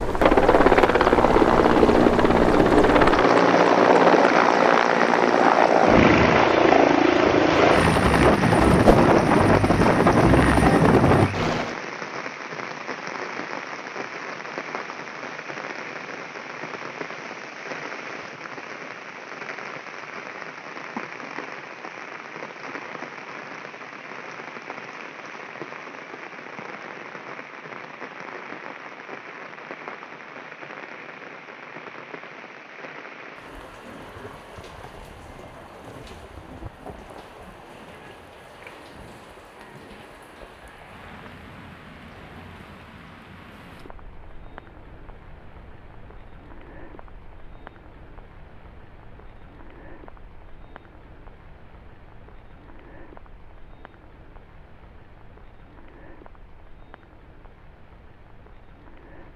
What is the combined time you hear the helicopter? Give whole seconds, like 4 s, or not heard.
12 s.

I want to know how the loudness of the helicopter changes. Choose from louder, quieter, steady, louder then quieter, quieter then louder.
steady.